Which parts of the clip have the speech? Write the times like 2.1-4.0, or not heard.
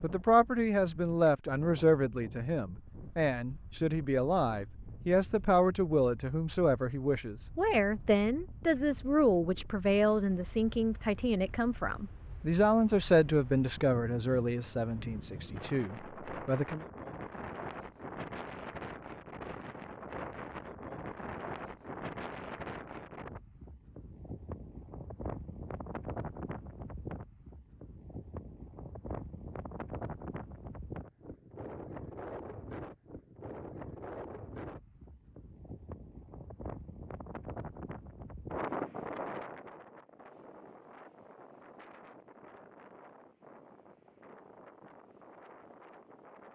0.0-16.9.